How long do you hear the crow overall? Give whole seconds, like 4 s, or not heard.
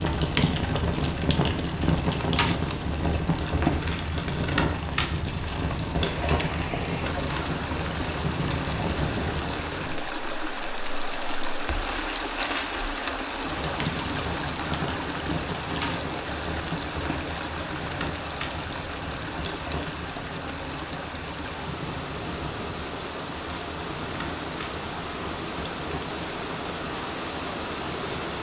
not heard.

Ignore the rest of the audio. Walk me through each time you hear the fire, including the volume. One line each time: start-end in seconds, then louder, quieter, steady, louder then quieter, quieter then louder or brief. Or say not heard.
0.0-28.3 quieter.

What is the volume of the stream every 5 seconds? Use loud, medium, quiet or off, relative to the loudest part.
off, loud, loud, loud, loud, loud.